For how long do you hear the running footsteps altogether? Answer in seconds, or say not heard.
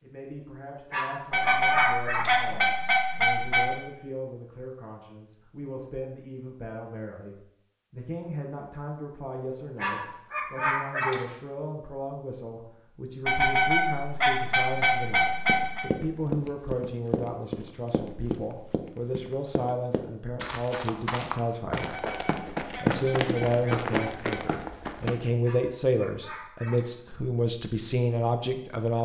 10 s.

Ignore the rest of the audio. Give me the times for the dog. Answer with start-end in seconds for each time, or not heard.
0.9-2.4, 9.8-11.2, 25.4-26.9.